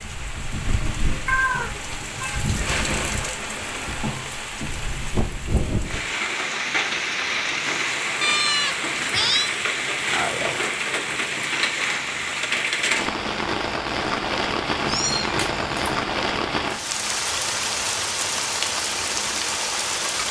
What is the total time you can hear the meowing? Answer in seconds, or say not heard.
4 s.